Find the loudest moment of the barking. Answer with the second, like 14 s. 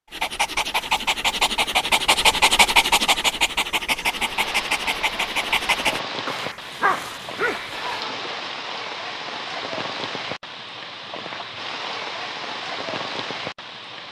3 s.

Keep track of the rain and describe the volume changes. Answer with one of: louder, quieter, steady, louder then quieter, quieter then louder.
steady.